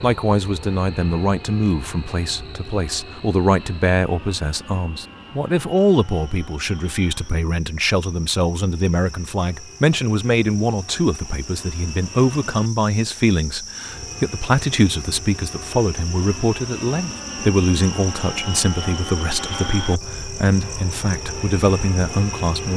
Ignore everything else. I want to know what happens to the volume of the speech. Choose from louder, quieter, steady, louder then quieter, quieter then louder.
steady.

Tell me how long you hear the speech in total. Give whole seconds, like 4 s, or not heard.
23 s.